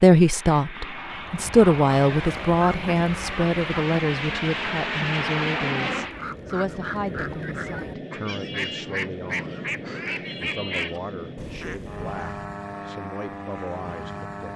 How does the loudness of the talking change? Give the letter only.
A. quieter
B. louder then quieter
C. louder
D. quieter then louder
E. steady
A.